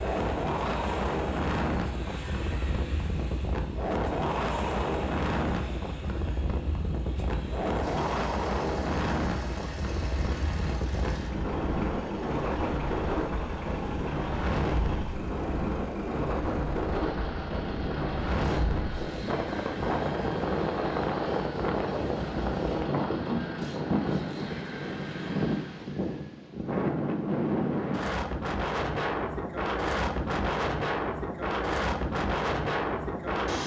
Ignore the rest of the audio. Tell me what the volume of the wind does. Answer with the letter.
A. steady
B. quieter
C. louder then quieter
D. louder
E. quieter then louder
A.